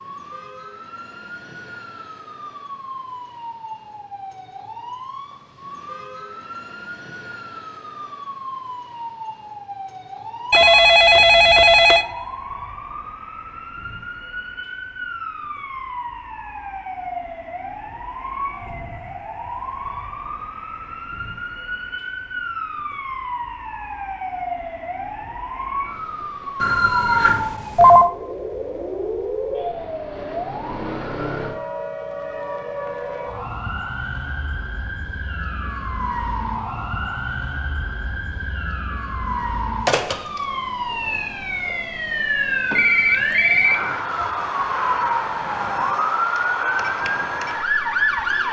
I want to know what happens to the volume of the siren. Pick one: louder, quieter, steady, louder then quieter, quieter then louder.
louder.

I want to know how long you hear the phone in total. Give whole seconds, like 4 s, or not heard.
5 s.